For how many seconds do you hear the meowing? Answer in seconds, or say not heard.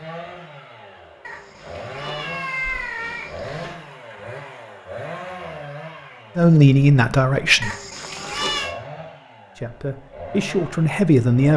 4 s.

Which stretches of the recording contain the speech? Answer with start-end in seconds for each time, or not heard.
6.3-7.8, 9.6-11.5.